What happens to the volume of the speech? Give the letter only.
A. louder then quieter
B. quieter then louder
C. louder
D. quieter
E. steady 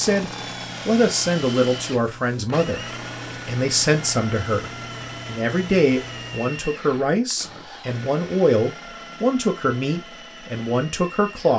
E.